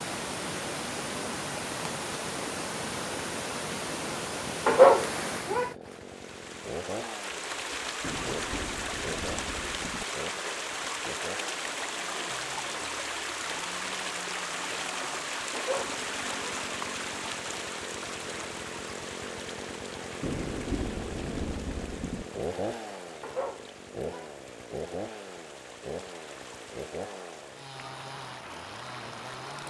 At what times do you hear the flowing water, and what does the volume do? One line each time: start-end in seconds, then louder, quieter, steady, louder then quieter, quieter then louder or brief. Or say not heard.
0.0-29.6 quieter.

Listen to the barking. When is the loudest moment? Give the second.
5 s.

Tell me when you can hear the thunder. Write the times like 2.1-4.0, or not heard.
8.0-10.1, 20.2-22.2.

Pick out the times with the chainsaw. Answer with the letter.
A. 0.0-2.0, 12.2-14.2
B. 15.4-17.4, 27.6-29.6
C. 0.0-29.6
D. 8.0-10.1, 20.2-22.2
C.